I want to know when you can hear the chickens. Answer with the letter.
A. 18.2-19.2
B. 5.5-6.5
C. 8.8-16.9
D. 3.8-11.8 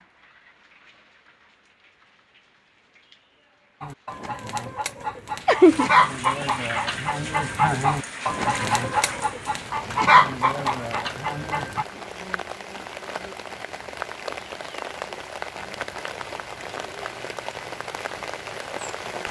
D.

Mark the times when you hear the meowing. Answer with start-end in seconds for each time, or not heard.
5.5-6.5.